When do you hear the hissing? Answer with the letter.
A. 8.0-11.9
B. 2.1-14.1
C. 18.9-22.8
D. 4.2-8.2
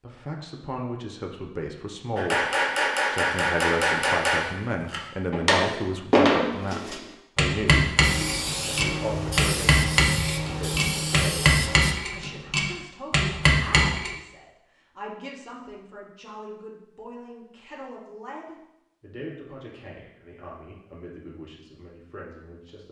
A.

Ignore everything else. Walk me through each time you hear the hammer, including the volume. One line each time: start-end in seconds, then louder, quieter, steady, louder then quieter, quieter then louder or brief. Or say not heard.
2.1-14.1 steady.